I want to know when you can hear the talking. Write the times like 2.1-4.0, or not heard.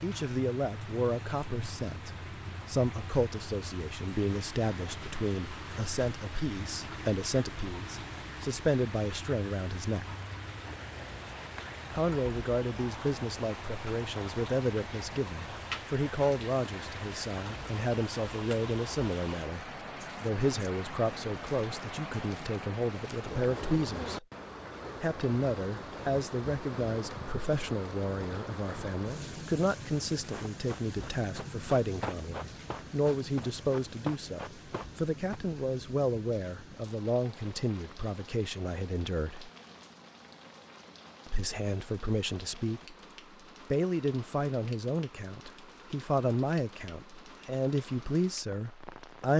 0.0-10.2, 11.9-24.2, 25.0-39.5, 41.2-43.0, 43.7-49.3.